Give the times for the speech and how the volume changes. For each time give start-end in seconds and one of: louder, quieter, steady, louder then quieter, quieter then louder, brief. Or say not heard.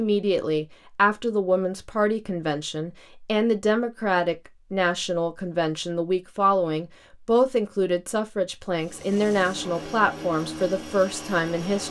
0.0-11.8 steady.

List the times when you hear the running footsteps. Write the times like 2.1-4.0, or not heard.
not heard.